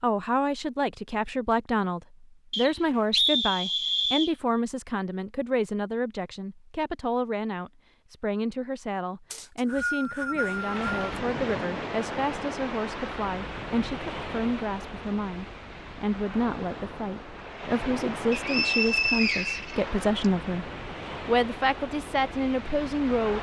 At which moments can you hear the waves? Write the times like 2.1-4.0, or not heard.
10.3-23.3.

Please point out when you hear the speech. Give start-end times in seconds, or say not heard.
0.0-20.6, 21.2-23.3.